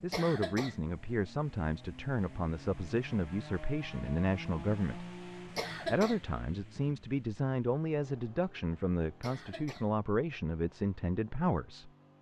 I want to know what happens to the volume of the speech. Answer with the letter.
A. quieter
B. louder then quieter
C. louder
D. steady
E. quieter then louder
D.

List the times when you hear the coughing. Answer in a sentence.
You can hear the coughing from 0.1 to 0.8 s, from 5.5 to 6.2 s and from 9.2 to 9.9 s.